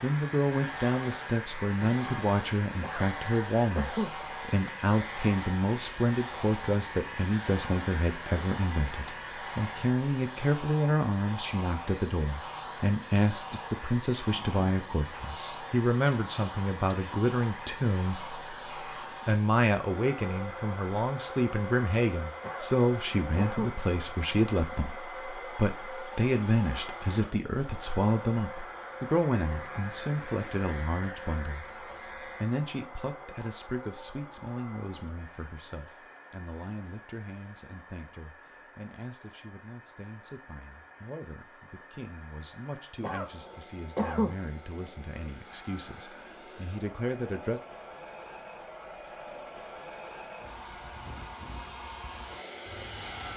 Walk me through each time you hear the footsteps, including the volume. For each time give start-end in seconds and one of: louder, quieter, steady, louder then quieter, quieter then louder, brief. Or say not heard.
not heard.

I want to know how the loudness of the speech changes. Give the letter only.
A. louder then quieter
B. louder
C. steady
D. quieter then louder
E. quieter
E.